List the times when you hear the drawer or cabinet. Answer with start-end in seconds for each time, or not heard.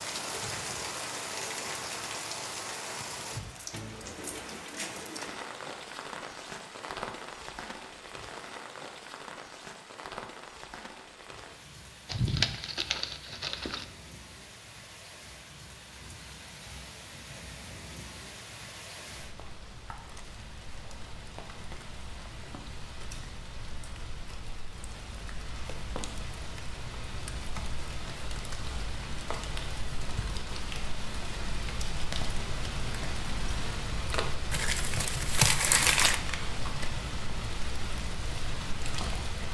not heard.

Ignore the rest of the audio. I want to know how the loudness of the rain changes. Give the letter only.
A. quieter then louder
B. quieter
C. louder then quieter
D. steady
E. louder
A.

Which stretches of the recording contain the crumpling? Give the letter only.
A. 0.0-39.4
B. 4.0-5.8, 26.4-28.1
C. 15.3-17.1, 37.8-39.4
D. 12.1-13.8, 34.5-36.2
D.